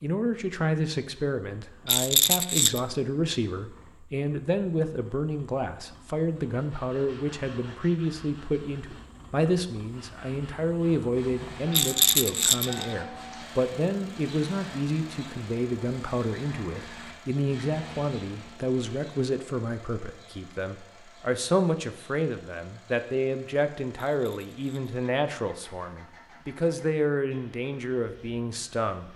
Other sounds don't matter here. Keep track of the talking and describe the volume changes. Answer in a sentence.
The volume of the talking stays about the same.